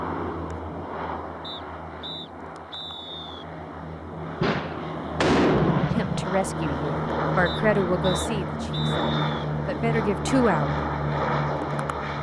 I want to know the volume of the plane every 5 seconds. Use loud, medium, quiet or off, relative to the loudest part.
medium, loud, loud.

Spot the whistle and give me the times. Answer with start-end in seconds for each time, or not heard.
1.4-3.5, 7.5-9.4.